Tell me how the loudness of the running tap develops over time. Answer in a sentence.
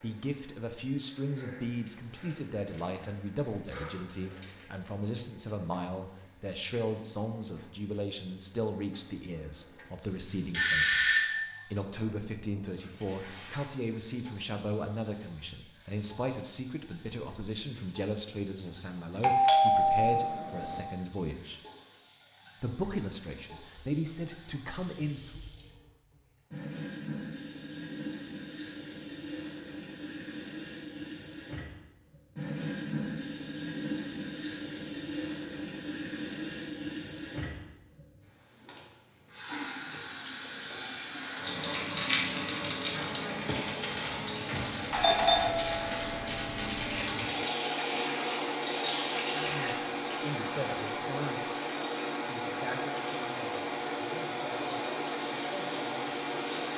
The loudness of the running tap goes up.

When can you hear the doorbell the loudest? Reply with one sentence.
The loudest moment of the doorbell is at 11 seconds.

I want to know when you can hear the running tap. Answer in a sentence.
The running tap can be heard from 0.0 to 56.7 s.